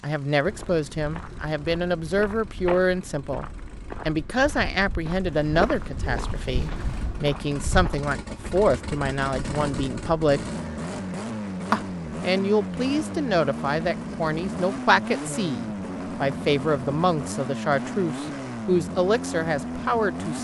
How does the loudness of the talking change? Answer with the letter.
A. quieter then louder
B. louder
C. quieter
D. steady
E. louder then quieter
D.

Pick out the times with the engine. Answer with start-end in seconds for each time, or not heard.
0.0-20.3.